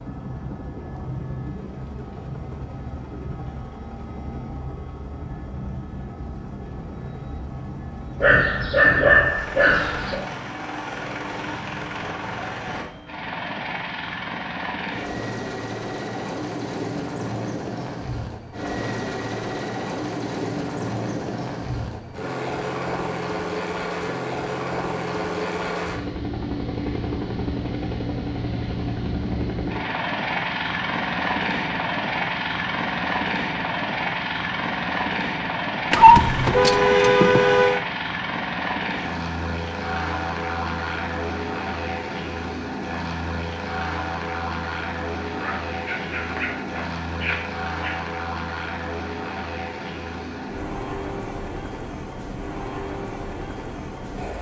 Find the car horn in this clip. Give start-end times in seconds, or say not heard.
35.9-37.8.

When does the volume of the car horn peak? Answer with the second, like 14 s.
36 s.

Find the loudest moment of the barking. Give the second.
9 s.